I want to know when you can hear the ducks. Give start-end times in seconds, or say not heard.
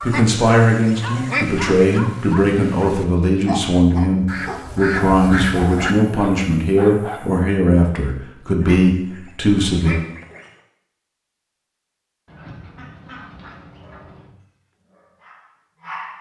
0.1-1.8, 4.2-6.0, 8.6-10.5, 12.2-14.3.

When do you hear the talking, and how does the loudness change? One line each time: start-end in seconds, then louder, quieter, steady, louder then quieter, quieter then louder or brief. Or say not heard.
0.0-9.9 steady.